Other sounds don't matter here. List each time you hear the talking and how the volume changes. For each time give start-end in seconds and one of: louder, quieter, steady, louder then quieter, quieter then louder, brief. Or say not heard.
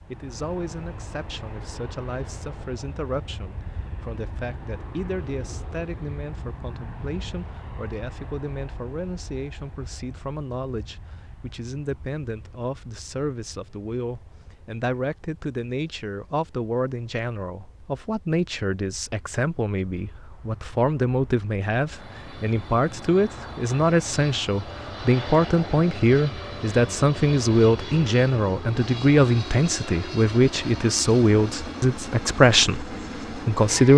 0.1-33.9 louder.